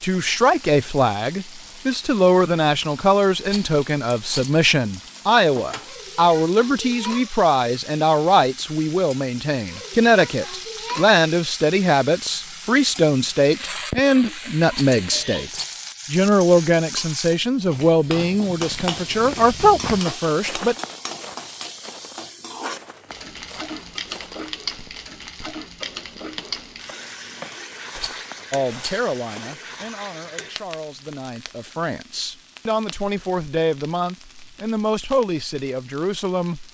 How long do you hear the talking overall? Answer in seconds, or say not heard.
29 s.